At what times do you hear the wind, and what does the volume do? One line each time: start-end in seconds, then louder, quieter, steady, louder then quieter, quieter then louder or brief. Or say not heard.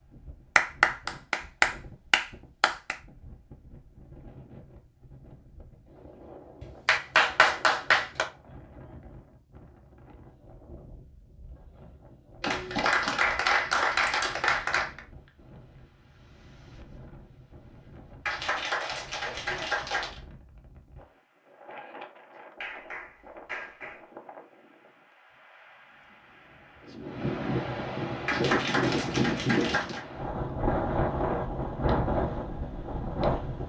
0.0-33.6 louder.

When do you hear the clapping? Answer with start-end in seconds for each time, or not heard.
0.6-3.0, 6.6-8.2, 12.4-15.0, 18.2-20.2, 22.6-24.0, 28.2-30.1.